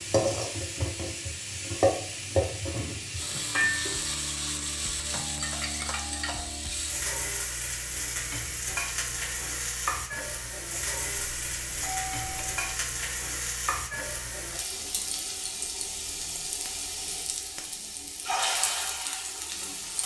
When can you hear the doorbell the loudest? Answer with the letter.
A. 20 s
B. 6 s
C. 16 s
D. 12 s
D.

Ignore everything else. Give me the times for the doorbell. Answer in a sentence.
You can hear the doorbell from 5.0 to 6.5 s and from 11.3 to 12.8 s.